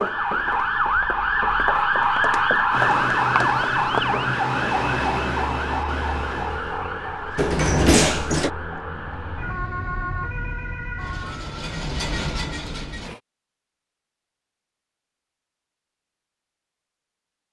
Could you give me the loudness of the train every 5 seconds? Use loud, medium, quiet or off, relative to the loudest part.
loud, loud, loud, off.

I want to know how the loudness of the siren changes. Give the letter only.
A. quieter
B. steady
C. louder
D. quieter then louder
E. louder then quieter
A.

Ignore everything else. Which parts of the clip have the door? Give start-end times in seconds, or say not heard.
7.3-8.5.